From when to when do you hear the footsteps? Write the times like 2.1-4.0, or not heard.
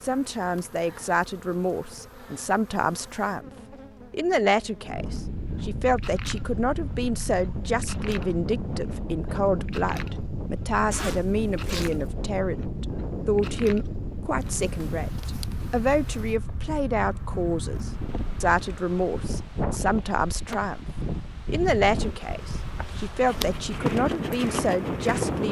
23.3-25.4.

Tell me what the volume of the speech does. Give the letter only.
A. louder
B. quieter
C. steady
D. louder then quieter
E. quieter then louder
C.